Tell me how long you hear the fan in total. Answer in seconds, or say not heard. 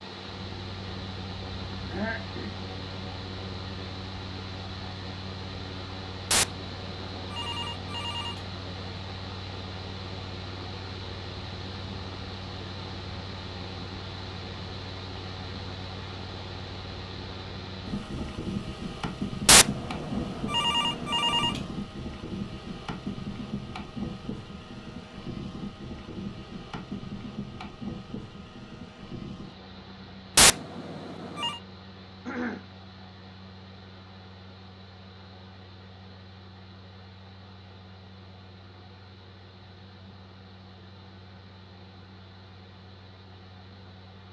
44 s.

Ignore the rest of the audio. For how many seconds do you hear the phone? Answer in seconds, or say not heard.
6 s.